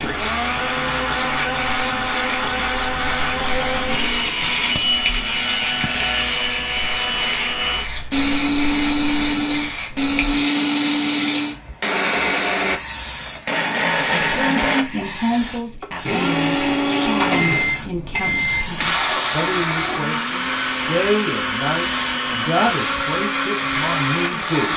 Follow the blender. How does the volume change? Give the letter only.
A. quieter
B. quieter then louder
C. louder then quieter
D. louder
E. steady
E.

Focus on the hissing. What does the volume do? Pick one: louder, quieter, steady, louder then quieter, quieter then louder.
steady.